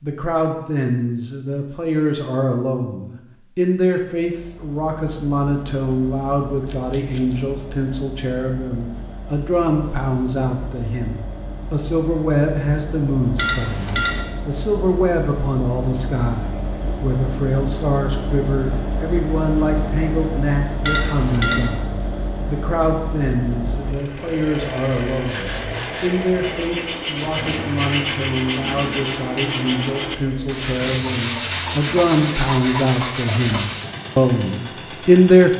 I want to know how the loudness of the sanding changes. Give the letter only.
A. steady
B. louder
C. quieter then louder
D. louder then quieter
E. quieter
B.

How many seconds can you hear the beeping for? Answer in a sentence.
You can hear the beeping for 2 seconds altogether.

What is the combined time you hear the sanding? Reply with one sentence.
You can hear the sanding for 9 seconds altogether.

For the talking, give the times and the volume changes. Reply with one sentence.
The talking can be heard from 0.0 to 35.5 s, at a steady volume.